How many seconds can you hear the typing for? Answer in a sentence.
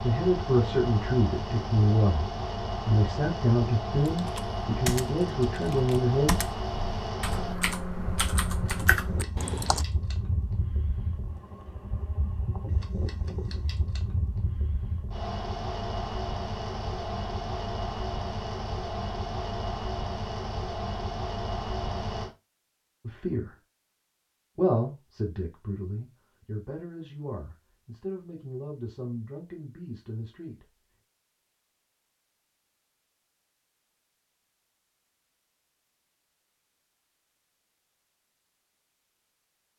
The typing can be heard for 6 seconds in total.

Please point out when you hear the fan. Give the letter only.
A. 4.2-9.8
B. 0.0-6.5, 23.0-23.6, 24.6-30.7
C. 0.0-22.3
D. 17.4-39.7
C.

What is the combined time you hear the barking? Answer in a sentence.
You can't hear the barking here.